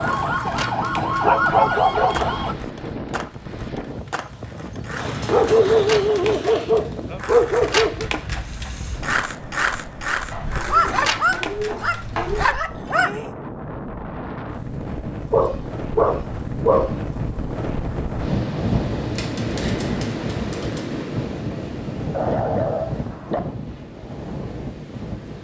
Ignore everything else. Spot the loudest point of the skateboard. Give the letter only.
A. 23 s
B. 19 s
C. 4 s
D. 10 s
D.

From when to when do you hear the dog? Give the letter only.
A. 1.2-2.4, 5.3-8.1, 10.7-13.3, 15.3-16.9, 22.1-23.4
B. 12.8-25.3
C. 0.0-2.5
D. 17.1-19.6
A.